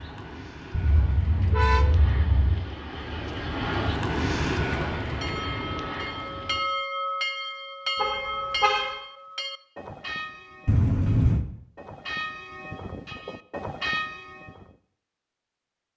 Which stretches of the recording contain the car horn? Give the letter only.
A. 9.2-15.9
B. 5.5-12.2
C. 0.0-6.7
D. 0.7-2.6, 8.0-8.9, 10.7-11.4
D.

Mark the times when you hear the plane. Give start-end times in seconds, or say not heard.
0.0-6.7.